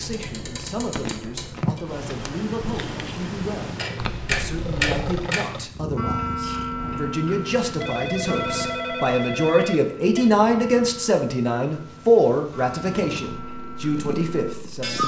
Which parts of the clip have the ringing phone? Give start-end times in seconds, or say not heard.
4.0-5.0, 7.8-10.3.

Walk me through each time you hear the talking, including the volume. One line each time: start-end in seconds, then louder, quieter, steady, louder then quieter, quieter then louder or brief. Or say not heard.
0.0-15.0 louder.